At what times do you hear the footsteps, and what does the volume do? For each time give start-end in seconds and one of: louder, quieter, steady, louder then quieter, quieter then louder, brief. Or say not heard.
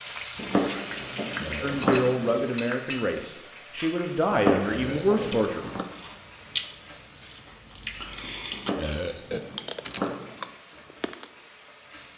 not heard.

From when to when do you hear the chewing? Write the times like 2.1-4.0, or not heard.
5.2-8.8, 9.5-11.2.